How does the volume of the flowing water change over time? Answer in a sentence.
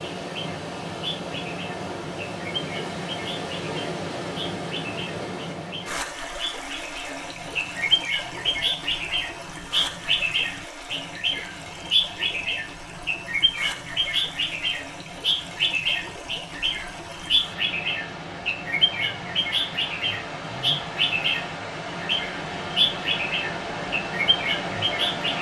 The loudness of the flowing water goes down, then up.